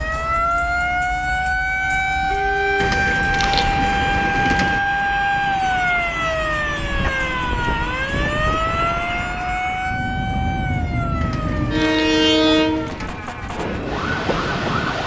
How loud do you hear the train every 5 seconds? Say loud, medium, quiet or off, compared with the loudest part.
medium, medium, loud.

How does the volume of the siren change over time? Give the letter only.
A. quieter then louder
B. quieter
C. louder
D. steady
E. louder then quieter
B.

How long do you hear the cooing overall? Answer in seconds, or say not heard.
4 s.